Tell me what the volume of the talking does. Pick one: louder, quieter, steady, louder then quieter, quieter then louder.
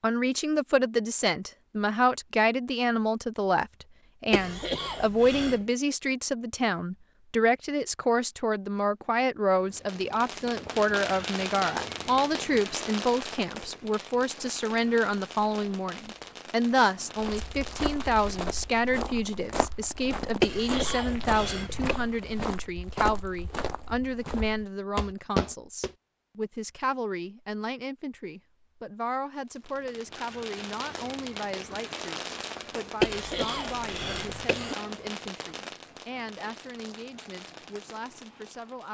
quieter.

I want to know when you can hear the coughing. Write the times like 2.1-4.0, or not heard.
4.3-5.7, 20.4-22.0, 33.0-34.8.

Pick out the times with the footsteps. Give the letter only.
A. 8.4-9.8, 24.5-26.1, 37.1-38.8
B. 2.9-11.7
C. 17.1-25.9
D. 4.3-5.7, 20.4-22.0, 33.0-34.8
C.